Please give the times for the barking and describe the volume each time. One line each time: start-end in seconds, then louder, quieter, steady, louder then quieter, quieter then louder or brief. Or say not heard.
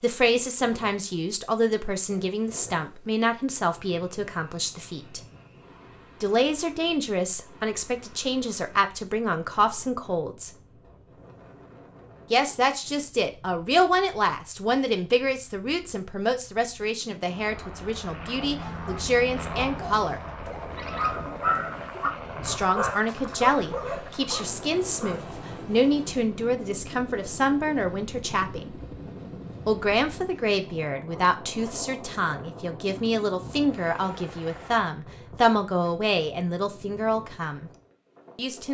18.4-25.3 louder then quieter.